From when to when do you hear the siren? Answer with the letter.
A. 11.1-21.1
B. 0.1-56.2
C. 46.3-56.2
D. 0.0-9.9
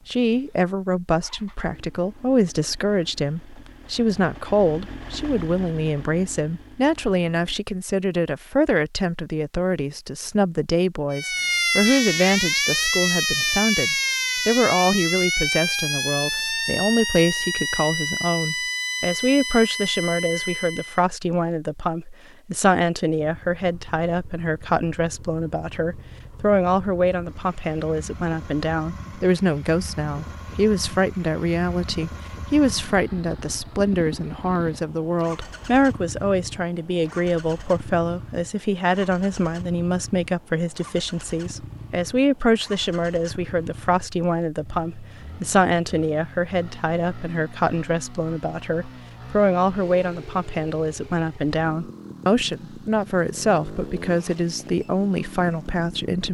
A.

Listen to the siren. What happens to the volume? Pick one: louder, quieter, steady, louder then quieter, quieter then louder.
quieter.